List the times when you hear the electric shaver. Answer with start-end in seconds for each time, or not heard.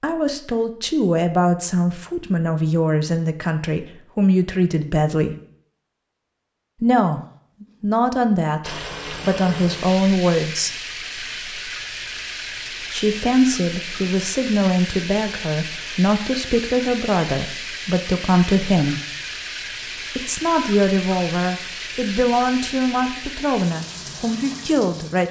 not heard.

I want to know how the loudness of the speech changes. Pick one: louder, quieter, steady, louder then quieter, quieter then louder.
steady.